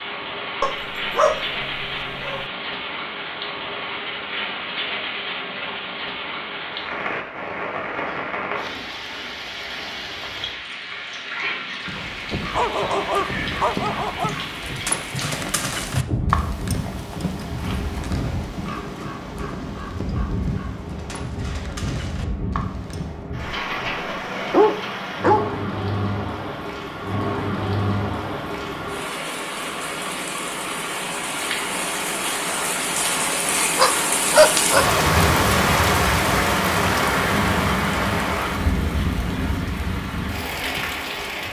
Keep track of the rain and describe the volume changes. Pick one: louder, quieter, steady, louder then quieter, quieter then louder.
louder.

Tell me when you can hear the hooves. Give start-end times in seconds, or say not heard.
11.8-23.2.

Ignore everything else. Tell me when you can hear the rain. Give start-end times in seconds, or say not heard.
0.0-41.4.